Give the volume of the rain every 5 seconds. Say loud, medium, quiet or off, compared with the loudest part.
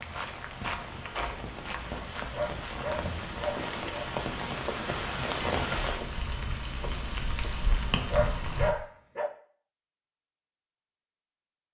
loud, loud, off.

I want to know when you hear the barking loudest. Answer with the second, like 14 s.
8 s.